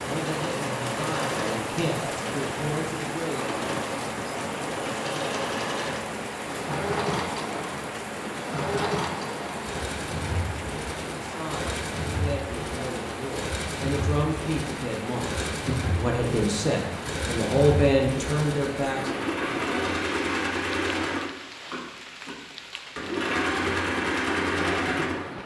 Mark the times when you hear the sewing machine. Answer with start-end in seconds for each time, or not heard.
0.1-25.3.